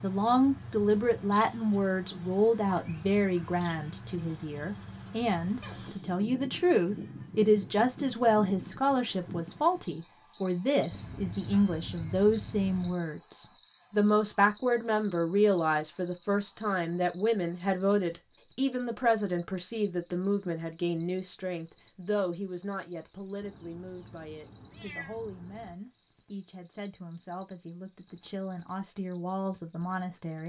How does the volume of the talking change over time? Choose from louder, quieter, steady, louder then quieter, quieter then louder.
quieter.